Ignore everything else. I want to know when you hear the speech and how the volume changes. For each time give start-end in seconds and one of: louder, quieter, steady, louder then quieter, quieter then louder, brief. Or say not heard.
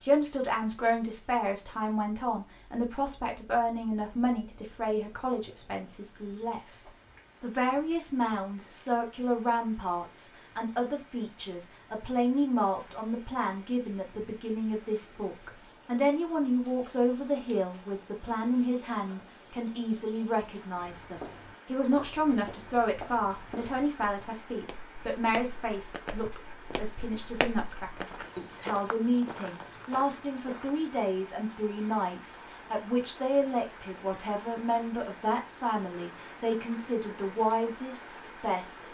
0.0-38.8 steady.